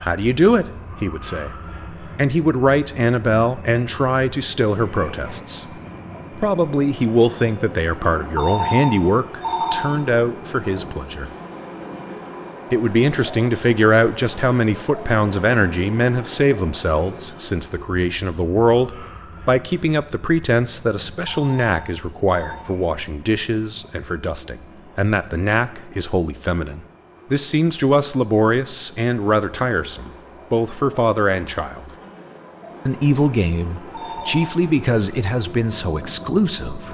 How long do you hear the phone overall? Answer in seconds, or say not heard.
4 s.